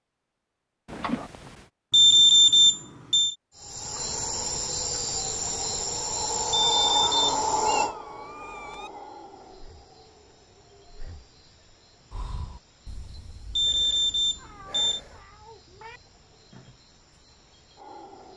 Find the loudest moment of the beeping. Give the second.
2 s.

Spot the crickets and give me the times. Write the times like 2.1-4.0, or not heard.
3.5-18.3.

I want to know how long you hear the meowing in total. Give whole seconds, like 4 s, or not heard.
4 s.